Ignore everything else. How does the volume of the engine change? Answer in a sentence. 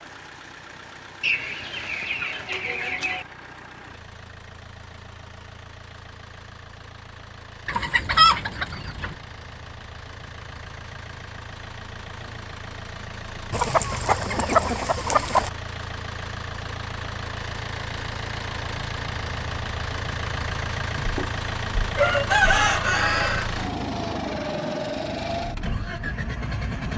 The volume of the engine goes up.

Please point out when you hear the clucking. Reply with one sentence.
The clucking can be heard from 1.2 to 3.2 s, from 7.7 to 9.2 s, from 13.5 to 15.5 s and from 20.9 to 23.5 s.